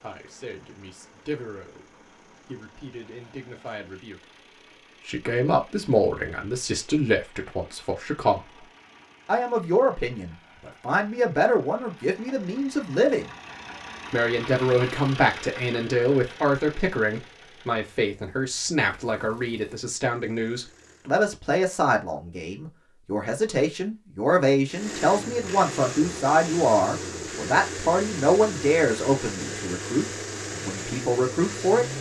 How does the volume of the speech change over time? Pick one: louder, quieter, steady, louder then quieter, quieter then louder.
louder.